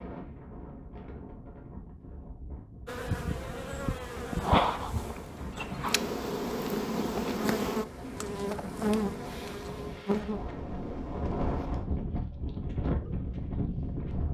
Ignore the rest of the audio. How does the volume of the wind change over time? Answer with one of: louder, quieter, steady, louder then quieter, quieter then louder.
louder.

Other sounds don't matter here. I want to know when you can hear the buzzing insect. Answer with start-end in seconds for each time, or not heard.
2.9-11.5.